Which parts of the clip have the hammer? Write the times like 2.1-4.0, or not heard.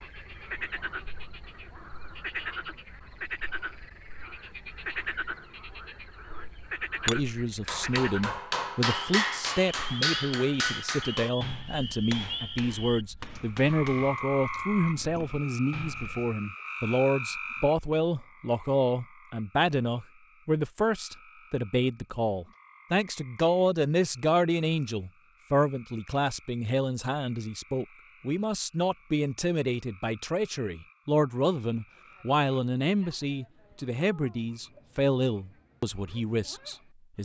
7.0-16.4.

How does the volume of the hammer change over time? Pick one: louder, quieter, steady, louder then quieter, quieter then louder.
quieter.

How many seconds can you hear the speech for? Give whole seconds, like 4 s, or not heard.
30 s.